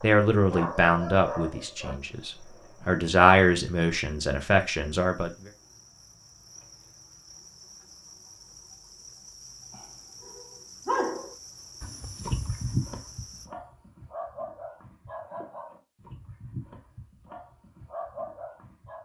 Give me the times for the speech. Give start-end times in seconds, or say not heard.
0.0-5.3.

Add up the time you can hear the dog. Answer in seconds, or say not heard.
12 s.